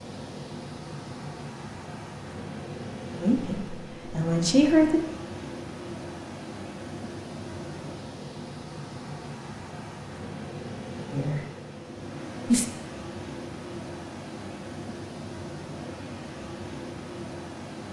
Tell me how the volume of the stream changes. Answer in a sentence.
The volume of the stream stays about the same.